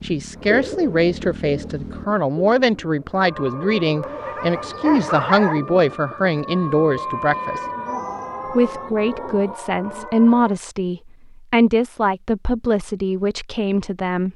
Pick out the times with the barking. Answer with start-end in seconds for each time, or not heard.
4.0-5.6.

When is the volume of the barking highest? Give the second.
5 s.